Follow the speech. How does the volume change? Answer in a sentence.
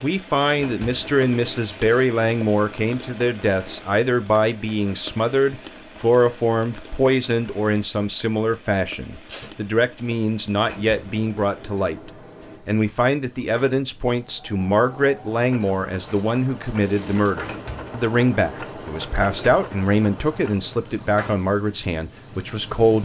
The volume of the speech stays about the same.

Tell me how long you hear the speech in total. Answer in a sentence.
The speech can be heard for 23 seconds in total.